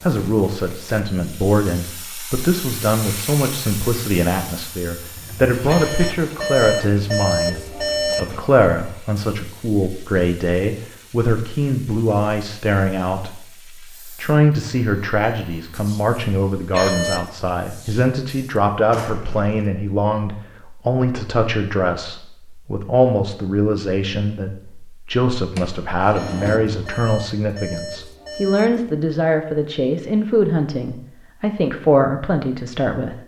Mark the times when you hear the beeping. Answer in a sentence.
You can hear the beeping from 5.7 to 8.4 s, from 16.7 to 17.3 s and from 26.1 to 28.9 s.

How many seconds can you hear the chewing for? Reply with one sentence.
You can't hear the chewing here.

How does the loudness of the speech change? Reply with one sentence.
The volume of the speech stays about the same.